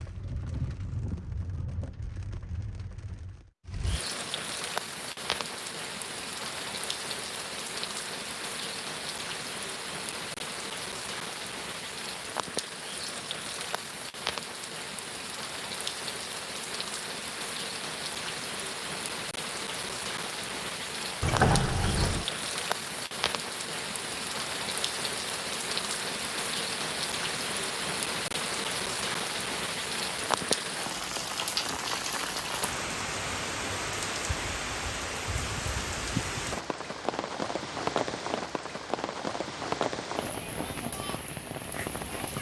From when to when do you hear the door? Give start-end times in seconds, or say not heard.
21.2-22.2.